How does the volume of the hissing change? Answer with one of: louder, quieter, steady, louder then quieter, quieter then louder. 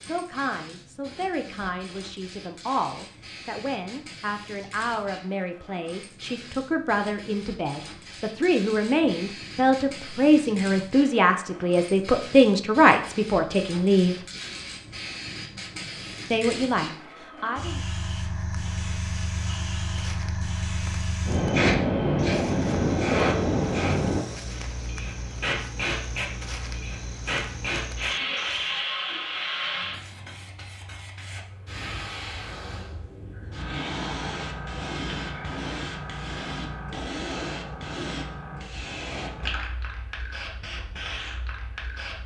louder then quieter.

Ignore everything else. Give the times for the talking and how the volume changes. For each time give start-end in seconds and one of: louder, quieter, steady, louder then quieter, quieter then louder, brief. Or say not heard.
0.0-14.2 louder
16.3-17.8 brief.